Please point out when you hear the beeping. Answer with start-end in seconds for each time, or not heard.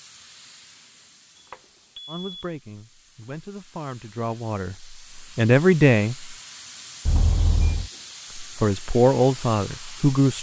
1.4-2.5, 7.0-7.9.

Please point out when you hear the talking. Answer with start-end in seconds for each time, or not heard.
2.0-6.3, 8.3-10.3.